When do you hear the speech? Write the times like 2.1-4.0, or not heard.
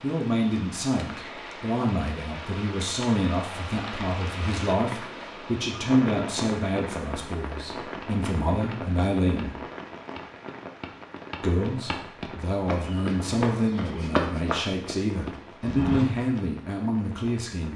0.0-9.6, 11.4-17.7.